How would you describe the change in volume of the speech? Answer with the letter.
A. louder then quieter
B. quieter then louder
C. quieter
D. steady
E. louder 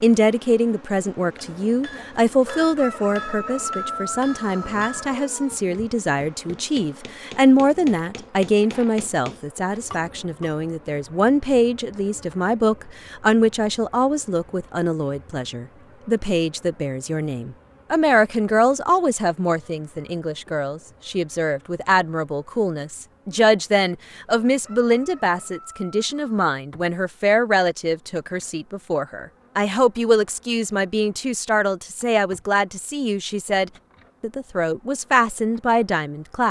D.